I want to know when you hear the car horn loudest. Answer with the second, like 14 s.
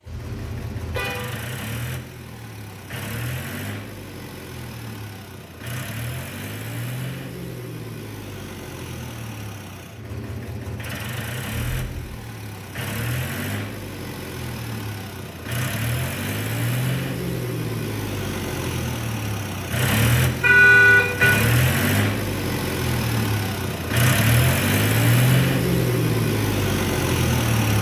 21 s.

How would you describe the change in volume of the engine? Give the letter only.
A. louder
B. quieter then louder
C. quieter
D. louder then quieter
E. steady
A.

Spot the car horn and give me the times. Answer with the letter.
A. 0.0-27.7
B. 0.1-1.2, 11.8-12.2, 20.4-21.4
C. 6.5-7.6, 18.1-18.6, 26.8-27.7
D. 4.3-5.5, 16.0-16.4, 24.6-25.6
B.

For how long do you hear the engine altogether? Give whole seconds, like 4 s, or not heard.
28 s.